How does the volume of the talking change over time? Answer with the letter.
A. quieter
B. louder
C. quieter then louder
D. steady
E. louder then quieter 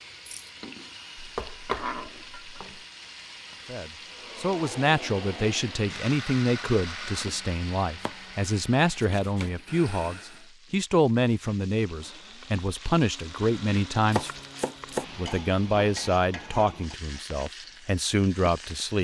D.